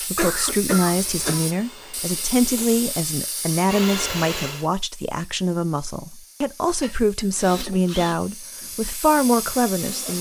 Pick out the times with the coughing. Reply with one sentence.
The coughing can be heard from 0.1 to 1.5 s and from 6.8 to 7.2 s.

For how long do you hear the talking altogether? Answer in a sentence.
You can hear the talking for 10 seconds altogether.